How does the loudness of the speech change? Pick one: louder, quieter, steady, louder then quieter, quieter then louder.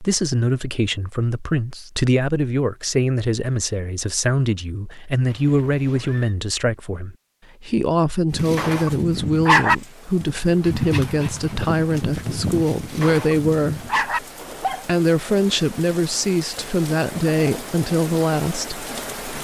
steady.